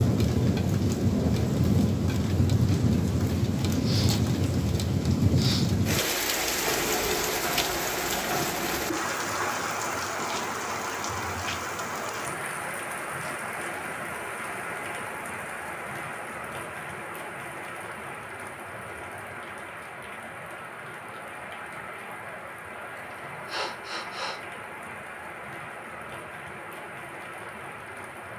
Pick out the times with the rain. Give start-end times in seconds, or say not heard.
0.0-28.3.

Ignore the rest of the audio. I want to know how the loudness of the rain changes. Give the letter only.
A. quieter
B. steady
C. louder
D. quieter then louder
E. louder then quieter
A.